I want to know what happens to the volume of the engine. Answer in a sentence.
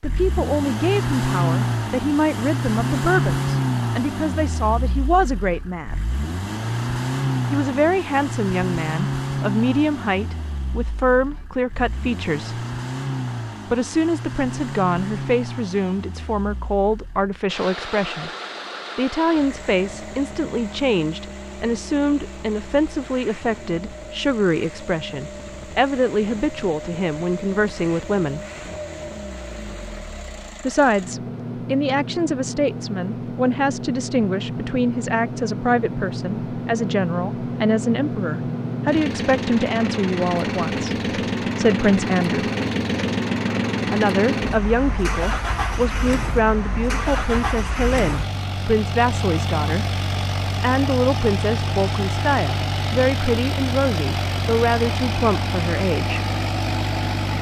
The loudness of the engine goes down, then up.